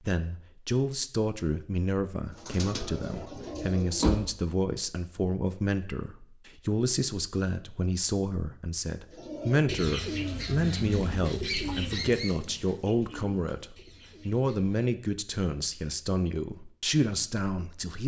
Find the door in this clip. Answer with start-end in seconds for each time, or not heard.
3.1-4.3.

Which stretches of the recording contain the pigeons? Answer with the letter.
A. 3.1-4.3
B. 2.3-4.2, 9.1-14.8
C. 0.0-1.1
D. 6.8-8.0
B.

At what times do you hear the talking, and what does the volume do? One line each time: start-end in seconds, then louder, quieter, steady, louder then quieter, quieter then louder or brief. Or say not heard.
0.0-18.0 steady.